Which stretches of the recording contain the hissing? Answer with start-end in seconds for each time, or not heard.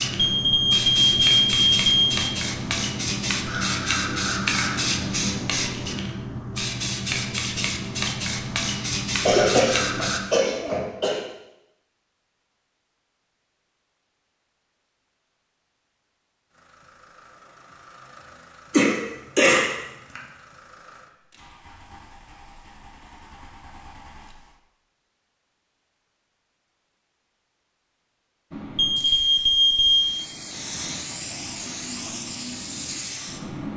0.0-10.2, 28.5-33.7.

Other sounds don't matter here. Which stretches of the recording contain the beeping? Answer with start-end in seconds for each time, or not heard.
0.1-2.2, 28.8-30.1.